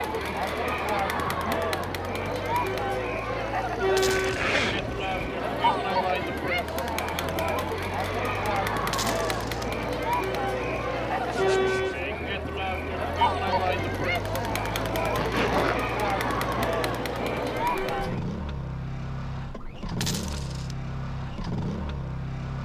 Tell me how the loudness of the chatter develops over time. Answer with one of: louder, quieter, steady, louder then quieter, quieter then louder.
steady.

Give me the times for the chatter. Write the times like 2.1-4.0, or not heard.
0.0-18.2.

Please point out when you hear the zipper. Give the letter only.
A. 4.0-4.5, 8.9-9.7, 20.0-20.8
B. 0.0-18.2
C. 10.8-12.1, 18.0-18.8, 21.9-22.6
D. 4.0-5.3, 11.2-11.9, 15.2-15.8
D.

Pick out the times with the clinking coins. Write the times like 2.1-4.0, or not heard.
4.0-4.5, 8.9-9.7, 20.0-20.8.